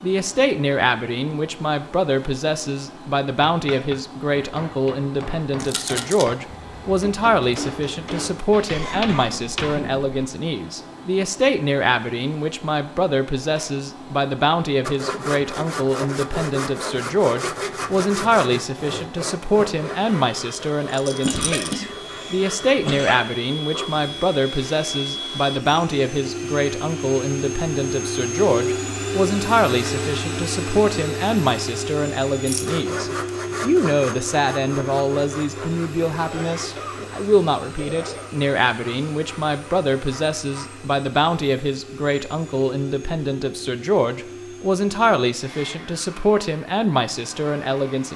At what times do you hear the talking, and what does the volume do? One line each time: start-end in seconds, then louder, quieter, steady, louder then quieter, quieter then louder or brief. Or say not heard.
0.0-48.1 steady.